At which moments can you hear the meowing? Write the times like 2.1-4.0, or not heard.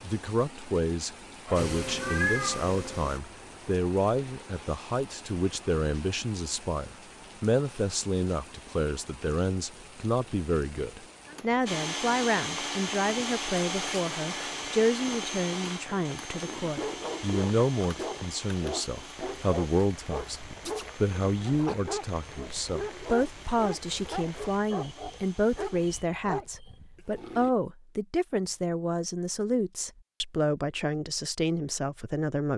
1.4-2.7.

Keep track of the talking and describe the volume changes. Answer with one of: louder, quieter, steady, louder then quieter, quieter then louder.
steady.